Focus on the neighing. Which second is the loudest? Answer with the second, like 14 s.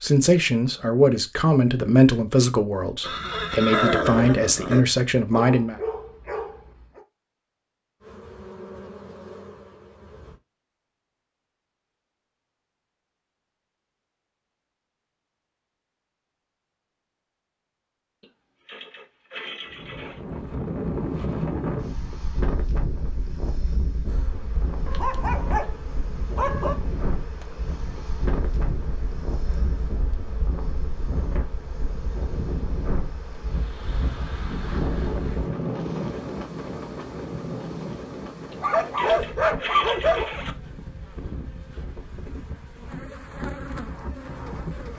4 s.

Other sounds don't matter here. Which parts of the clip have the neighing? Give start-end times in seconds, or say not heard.
3.0-4.8, 18.2-20.2, 38.5-40.5.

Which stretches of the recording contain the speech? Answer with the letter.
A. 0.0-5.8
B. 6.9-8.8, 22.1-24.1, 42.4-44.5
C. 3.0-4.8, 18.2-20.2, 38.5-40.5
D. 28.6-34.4
A.